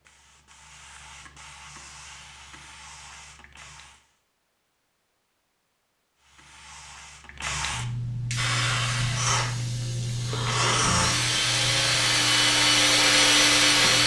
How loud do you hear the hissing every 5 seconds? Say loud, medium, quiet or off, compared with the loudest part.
quiet, loud, loud.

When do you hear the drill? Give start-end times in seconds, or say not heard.
8.3-14.0.